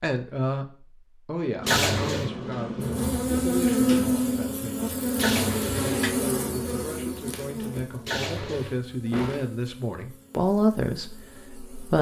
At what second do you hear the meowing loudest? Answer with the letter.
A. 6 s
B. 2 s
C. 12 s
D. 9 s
B.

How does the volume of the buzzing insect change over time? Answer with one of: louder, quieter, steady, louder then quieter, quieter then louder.
quieter.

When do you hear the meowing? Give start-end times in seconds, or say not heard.
1.6-2.3, 5.2-6.2, 8.1-8.8.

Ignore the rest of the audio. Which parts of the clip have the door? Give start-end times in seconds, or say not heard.
1.6-4.2, 9.1-9.5.